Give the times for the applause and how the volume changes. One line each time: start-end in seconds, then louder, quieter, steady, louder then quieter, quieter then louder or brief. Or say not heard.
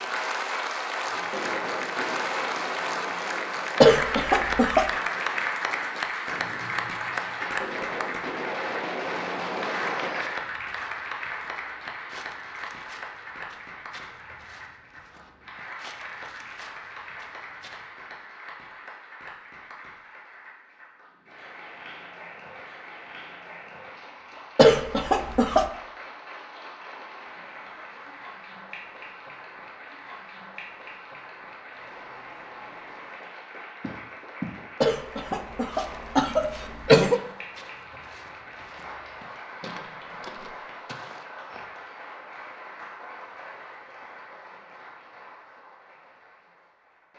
0.0-47.1 quieter.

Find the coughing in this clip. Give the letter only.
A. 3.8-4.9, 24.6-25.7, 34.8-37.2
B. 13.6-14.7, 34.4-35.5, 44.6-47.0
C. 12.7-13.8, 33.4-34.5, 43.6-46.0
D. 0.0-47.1
A.